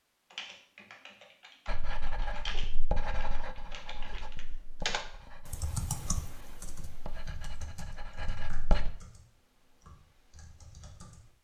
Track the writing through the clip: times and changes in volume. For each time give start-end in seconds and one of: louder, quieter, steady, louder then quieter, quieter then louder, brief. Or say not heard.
1.6-8.9 quieter.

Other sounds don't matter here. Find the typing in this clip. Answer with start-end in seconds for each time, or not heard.
0.3-11.3.